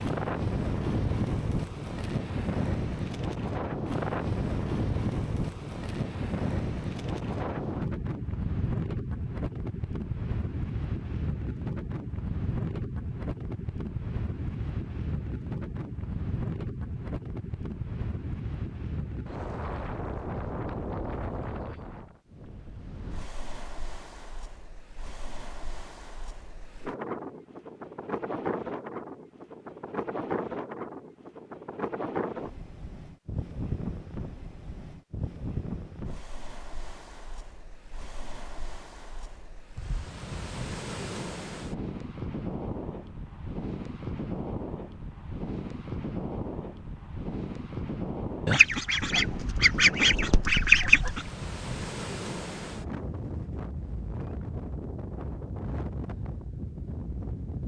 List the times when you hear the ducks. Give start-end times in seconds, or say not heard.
48.5-51.3.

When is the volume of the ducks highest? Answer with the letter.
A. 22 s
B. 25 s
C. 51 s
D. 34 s
C.